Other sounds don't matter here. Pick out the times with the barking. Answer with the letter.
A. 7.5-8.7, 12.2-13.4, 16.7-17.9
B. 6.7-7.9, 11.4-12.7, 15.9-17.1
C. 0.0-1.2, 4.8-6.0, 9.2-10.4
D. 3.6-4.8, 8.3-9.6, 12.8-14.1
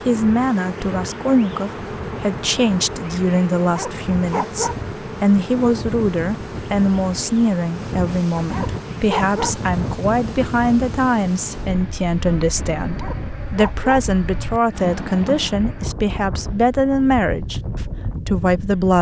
D.